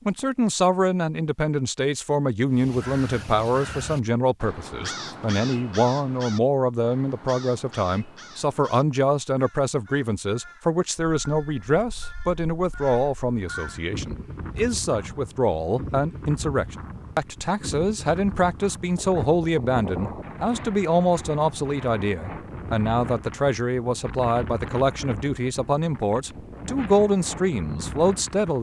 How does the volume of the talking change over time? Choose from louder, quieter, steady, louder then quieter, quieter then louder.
steady.